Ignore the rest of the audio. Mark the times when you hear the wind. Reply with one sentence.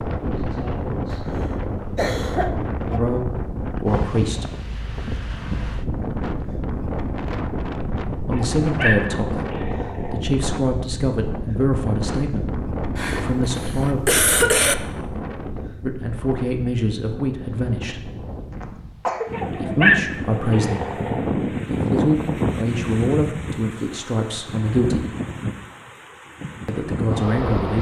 The wind can be heard from 0.0 to 27.7 s.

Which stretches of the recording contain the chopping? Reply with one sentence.
You can't hear the chopping here.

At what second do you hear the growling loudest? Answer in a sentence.
The volume of the growling peaks at 20 seconds.